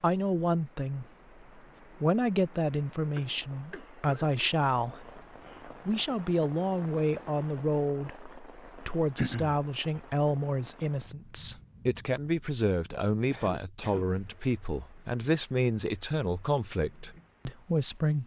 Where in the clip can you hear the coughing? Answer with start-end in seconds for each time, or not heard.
3.1-4.3, 9.2-9.6, 13.3-14.1.